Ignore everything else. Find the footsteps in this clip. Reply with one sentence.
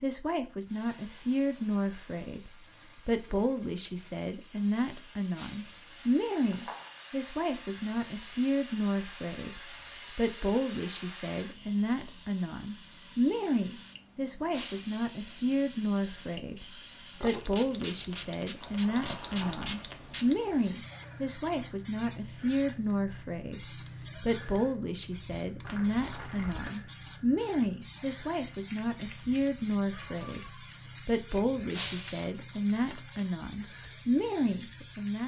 The footsteps can't be heard in this clip.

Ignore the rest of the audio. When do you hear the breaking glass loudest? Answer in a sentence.
The volume of the breaking glass peaks at 32 seconds.